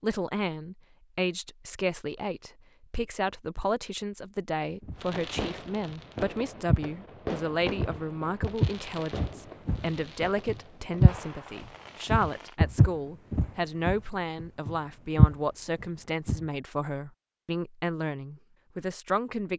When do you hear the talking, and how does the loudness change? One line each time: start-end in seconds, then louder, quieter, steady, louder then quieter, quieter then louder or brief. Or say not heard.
0.0-19.5 steady.